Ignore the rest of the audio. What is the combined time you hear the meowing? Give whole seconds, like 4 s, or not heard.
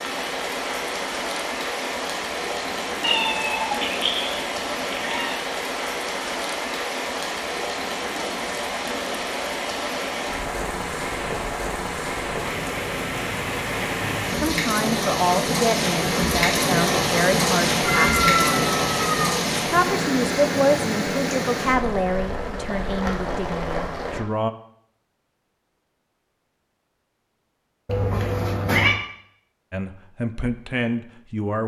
5 s.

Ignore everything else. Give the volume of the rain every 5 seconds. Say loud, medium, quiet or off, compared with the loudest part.
medium, medium, medium, loud, medium, off, off.